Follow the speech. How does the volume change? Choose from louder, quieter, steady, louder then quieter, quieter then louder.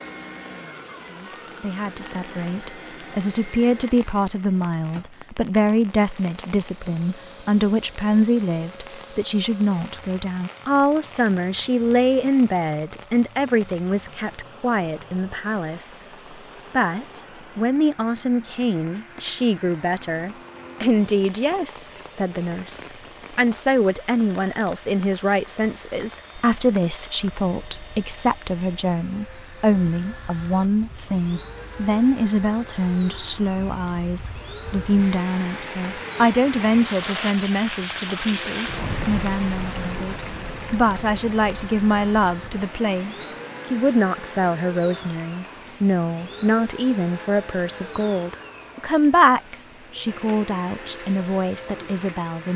steady.